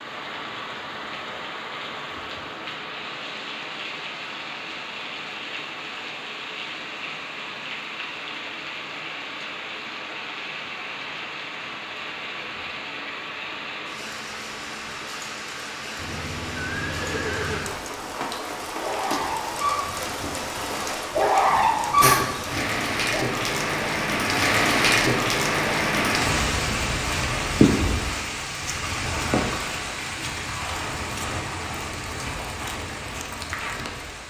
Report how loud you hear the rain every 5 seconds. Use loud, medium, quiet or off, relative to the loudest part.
medium, medium, medium, medium, loud, loud, medium.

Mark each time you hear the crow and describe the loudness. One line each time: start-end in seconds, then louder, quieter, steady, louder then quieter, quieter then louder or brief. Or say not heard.
not heard.